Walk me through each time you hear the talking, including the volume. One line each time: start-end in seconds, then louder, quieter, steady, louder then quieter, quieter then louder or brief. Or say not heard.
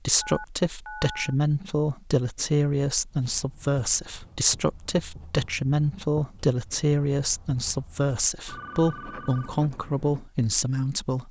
0.1-11.2 steady.